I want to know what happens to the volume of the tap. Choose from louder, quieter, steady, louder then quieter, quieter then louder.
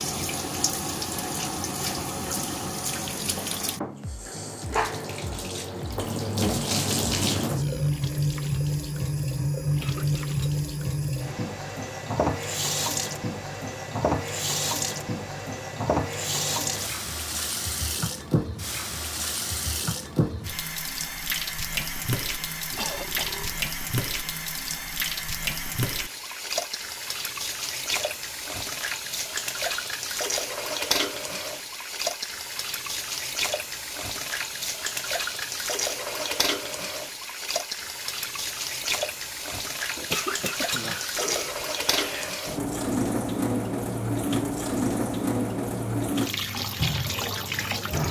steady.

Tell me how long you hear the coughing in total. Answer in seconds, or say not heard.
3 s.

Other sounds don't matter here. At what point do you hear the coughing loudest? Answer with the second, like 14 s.
40 s.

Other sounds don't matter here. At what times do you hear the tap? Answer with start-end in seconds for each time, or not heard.
0.0-48.0.